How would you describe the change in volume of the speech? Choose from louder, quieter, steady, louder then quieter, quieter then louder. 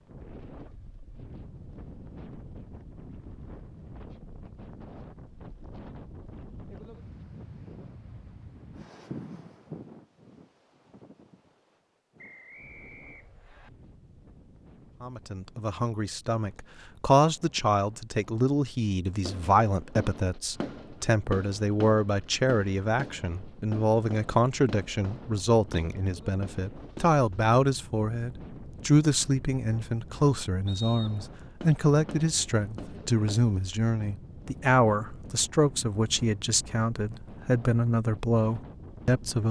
steady.